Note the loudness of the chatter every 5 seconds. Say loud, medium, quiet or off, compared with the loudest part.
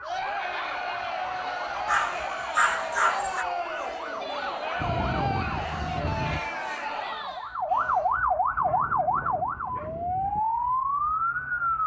loud, loud, off.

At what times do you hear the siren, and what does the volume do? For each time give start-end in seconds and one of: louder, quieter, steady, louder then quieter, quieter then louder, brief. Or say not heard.
0.0-11.8 louder.